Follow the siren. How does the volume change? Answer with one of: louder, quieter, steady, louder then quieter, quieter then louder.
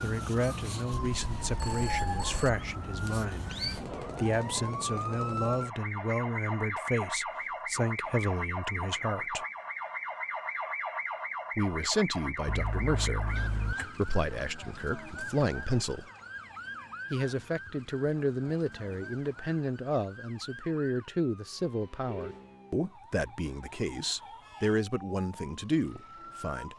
quieter.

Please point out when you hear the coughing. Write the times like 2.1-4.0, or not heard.
not heard.